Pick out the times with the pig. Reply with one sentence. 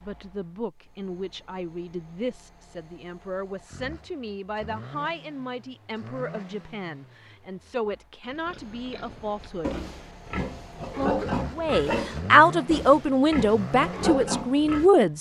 The pig can be heard from 8.2 to 14.9 s.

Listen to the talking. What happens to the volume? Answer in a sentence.
The loudness of the talking goes up.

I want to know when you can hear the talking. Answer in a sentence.
The talking can be heard from 0.0 to 9.8 s and from 10.9 to 15.1 s.